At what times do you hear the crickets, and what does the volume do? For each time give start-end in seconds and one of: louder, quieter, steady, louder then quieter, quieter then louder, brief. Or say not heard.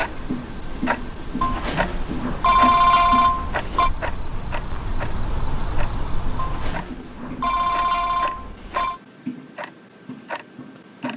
0.0-6.8 louder.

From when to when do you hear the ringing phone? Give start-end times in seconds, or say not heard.
1.4-3.9, 6.3-9.0.